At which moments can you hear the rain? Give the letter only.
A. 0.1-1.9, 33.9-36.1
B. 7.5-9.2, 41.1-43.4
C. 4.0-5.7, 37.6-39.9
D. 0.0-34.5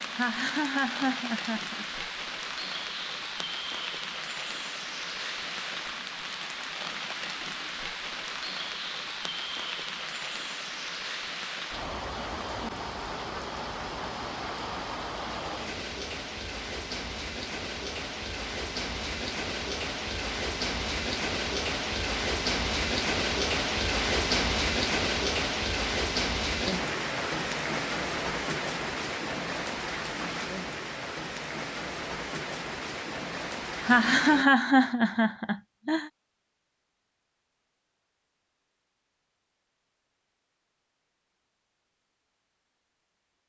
D.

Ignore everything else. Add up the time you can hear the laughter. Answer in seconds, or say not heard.
4 s.